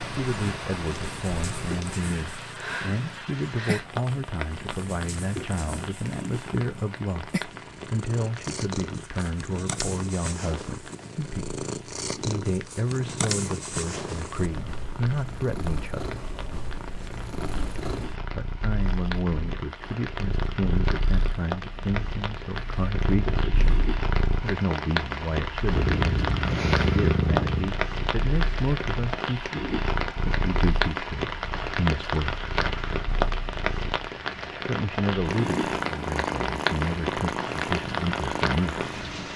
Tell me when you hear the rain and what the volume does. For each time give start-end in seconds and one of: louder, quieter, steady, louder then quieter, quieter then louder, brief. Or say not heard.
0.0-39.3 quieter then louder.